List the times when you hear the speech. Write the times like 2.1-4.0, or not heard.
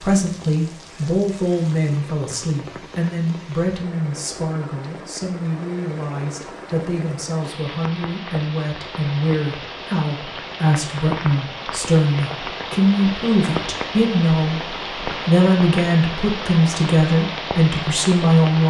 0.0-18.6.